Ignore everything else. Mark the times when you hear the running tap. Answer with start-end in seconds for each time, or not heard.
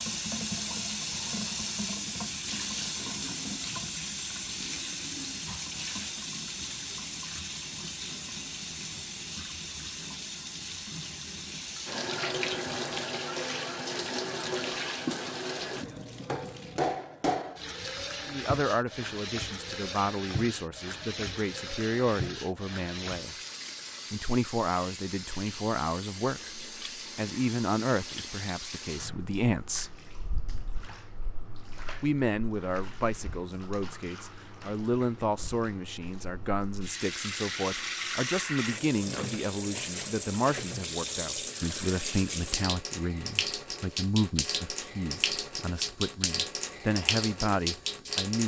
0.0-48.4.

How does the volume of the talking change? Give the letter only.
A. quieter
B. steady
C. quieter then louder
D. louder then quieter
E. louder
B.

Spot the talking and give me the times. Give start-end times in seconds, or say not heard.
18.2-23.4, 24.1-29.9, 32.0-48.4.